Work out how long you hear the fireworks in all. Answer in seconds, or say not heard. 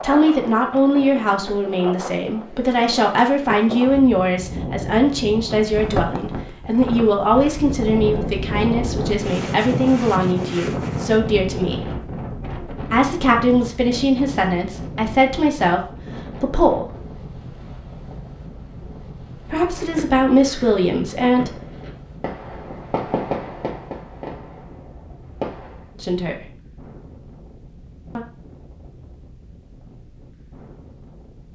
6 s.